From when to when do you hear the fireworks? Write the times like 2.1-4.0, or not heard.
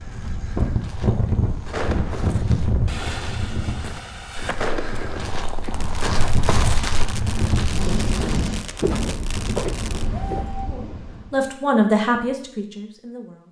1.7-10.1.